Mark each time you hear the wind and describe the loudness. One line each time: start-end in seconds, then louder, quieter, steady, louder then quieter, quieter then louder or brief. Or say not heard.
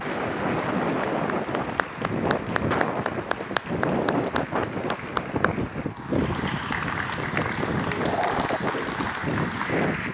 0.0-10.0 steady.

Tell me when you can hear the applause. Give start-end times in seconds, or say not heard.
0.0-10.0.